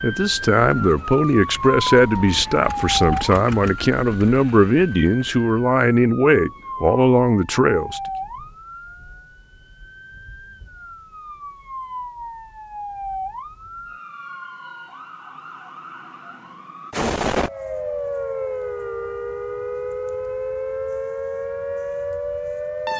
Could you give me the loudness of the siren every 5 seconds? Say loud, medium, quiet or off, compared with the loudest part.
loud, medium, medium, loud, loud.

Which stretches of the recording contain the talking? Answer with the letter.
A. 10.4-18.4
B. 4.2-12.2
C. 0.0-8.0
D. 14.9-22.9
C.